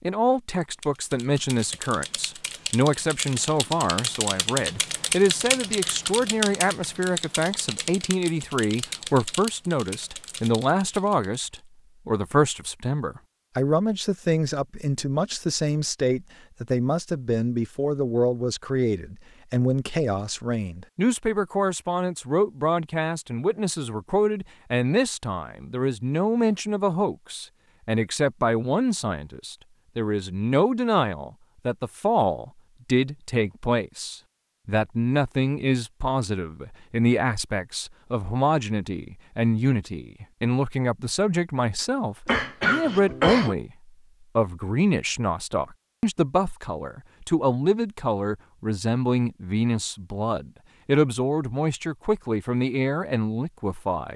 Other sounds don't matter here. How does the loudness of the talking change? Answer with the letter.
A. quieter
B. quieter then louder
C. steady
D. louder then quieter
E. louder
C.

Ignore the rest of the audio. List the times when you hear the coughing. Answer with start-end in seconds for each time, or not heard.
42.2-43.5.